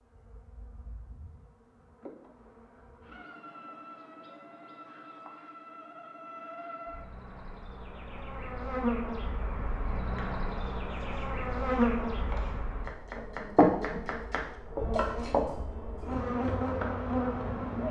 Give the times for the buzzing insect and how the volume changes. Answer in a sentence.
You can hear the buzzing insect from 0.0 to 17.8 s, getting louder.